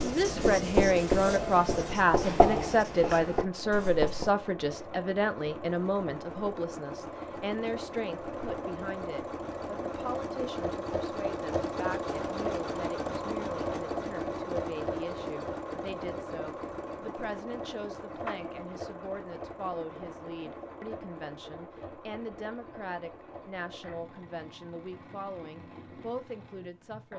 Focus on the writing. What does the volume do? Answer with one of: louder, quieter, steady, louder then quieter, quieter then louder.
quieter.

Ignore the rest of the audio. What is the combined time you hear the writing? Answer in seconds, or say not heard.
4 s.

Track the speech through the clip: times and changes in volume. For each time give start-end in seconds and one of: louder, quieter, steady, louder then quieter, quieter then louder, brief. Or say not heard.
0.0-27.1 quieter.